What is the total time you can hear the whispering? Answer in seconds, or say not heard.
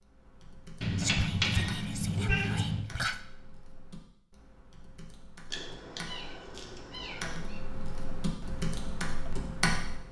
2 s.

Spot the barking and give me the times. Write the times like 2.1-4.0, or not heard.
not heard.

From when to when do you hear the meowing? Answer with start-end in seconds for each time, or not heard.
0.8-2.8, 5.5-7.6.